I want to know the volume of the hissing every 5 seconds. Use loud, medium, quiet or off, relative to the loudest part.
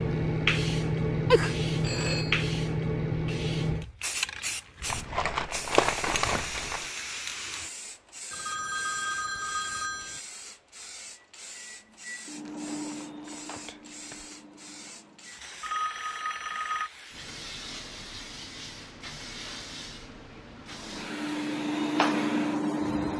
loud, medium, quiet, quiet, quiet.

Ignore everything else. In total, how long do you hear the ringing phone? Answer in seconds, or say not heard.
4 s.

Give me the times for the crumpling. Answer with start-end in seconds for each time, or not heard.
4.8-6.9, 12.4-14.3.